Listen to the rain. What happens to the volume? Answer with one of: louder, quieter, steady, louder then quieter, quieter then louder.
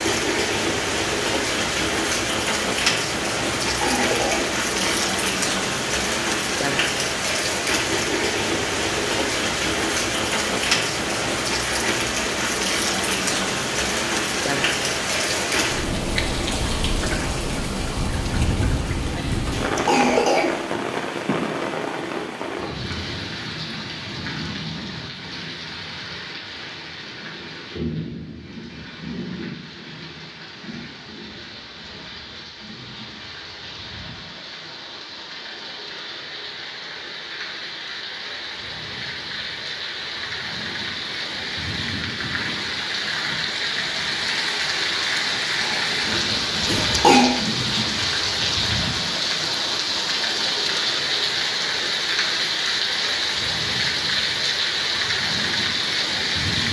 quieter then louder.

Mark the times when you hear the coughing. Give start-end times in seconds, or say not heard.
3.6-5.0, 19.5-20.6, 46.6-47.4.